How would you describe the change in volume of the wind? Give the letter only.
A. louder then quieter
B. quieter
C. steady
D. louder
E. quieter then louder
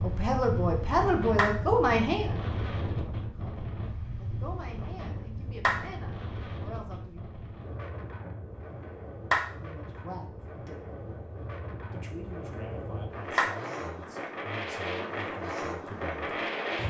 E.